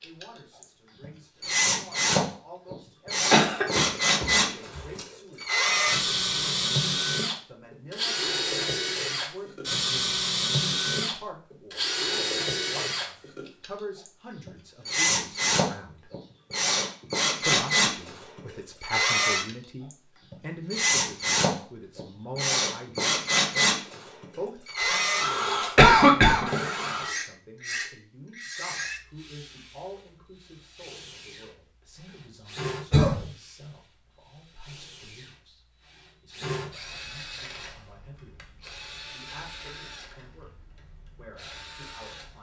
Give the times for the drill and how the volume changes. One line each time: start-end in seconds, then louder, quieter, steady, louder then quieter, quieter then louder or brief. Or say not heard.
0.0-42.3 quieter.